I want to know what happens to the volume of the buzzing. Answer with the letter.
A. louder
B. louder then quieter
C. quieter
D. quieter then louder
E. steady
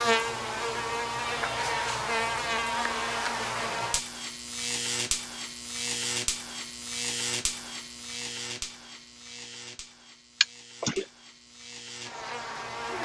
C.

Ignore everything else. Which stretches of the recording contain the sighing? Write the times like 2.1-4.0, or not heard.
10.4-11.1.